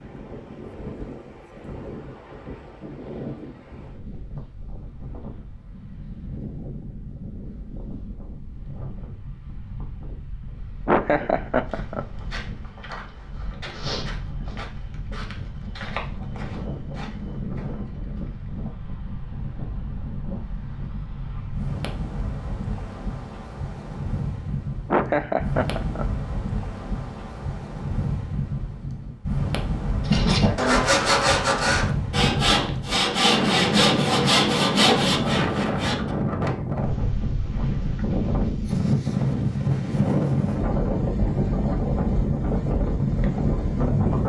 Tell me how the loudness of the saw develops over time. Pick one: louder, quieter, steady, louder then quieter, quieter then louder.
steady.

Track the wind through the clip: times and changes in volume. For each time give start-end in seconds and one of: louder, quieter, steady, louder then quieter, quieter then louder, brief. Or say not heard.
0.0-44.2 louder.